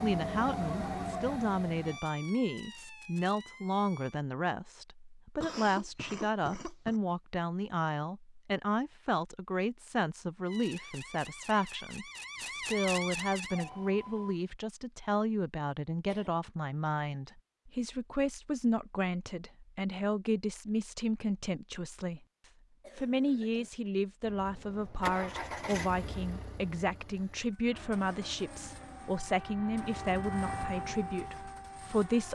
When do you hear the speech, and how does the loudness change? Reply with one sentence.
The speech can be heard from 0.0 to 32.2 s, at a steady volume.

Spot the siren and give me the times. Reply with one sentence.
The siren can be heard from 0.0 to 4.2 s, from 10.4 to 14.4 s and from 27.6 to 32.2 s.